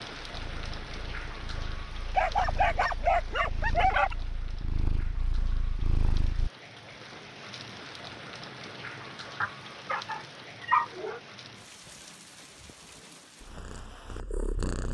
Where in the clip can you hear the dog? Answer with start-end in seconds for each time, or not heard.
2.1-4.2, 9.4-11.2.